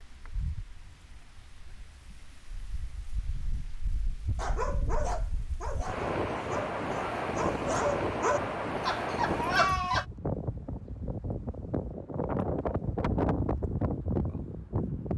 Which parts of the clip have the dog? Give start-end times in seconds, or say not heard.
4.3-10.1.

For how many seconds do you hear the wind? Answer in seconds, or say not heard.
15 s.